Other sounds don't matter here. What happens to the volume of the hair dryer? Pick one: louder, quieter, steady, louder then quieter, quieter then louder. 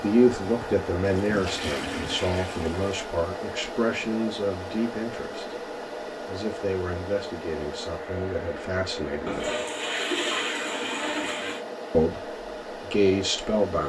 steady.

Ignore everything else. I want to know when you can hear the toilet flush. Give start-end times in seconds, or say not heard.
1.0-3.0, 9.2-11.7.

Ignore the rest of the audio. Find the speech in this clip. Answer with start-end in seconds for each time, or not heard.
0.0-9.6, 11.9-13.8.